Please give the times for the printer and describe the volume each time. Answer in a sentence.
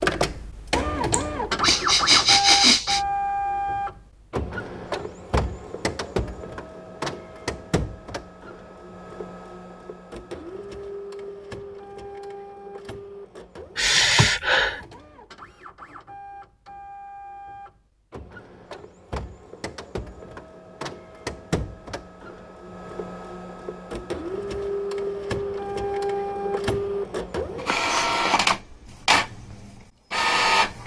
You can hear the printer from 0.0 to 30.8 s, getting quieter then louder.